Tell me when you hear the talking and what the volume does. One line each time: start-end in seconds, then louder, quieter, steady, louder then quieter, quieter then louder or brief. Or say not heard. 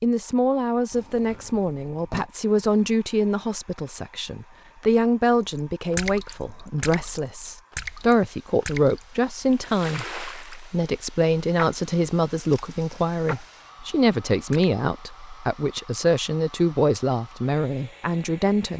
0.0-18.7 steady.